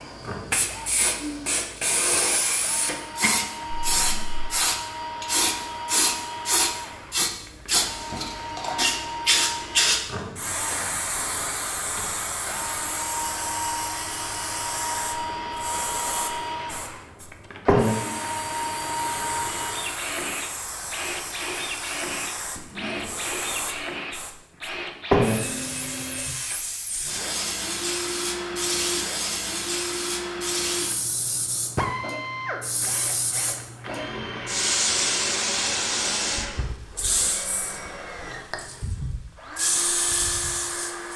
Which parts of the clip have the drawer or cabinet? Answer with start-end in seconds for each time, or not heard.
3.7-4.5, 22.6-23.1.